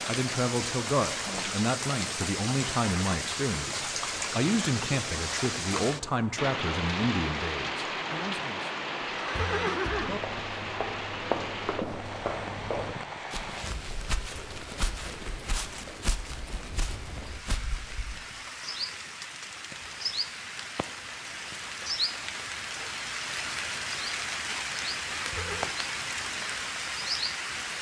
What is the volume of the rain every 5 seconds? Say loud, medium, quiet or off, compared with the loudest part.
loud, loud, medium, medium, loud, loud.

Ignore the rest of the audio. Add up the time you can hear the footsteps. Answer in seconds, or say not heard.
8 s.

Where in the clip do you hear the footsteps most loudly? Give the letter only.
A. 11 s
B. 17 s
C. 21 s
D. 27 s
A.